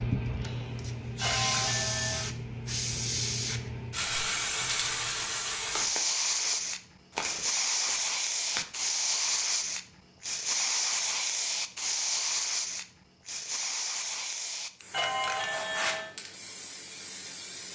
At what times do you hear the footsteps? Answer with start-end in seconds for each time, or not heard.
3.9-8.8.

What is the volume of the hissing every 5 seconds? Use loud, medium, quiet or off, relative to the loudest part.
loud, loud, loud, medium.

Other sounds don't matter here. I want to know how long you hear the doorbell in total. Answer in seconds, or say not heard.
2 s.